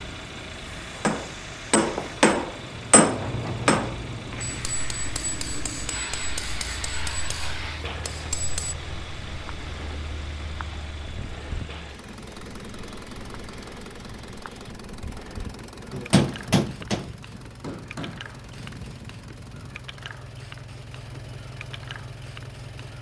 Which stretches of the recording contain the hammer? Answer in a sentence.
You can hear the hammer from 0.9 to 8.8 s and from 15.9 to 18.2 s.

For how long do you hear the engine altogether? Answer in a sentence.
The engine can be heard for 23 seconds in total.